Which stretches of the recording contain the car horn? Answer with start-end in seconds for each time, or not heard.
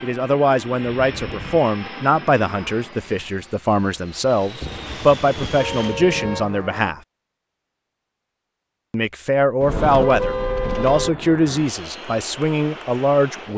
1.1-1.6, 4.6-6.5, 9.6-11.1.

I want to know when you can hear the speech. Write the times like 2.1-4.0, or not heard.
0.0-7.0, 8.9-13.5.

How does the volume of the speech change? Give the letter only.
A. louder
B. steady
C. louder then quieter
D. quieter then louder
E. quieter
B.